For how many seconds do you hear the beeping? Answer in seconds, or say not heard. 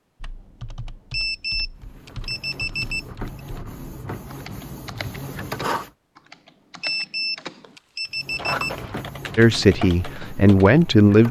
4 s.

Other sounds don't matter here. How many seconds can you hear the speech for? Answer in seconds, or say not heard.
2 s.